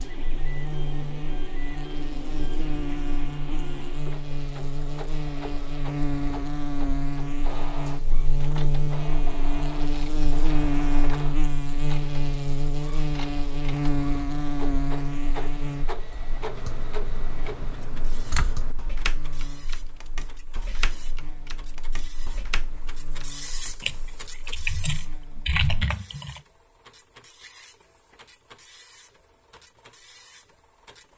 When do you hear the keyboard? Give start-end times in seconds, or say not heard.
16.1-26.4.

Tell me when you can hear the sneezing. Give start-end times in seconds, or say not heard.
not heard.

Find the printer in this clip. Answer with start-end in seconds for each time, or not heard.
0.0-31.1.